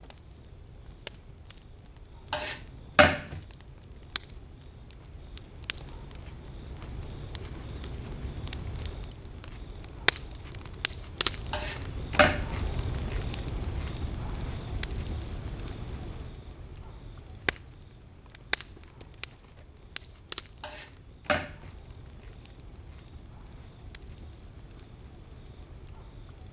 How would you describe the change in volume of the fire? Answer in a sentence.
The loudness of the fire goes up, then down.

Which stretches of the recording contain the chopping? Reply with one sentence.
The chopping can be heard from 2.3 to 3.4 s, from 11.5 to 12.6 s and from 20.6 to 21.7 s.